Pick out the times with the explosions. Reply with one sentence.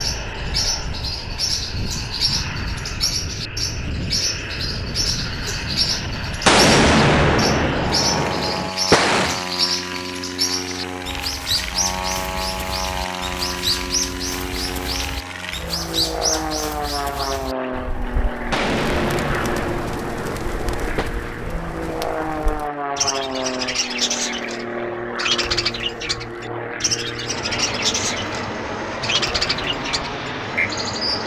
The explosions can be heard from 6.5 to 9.4 s and from 18.5 to 21.1 s.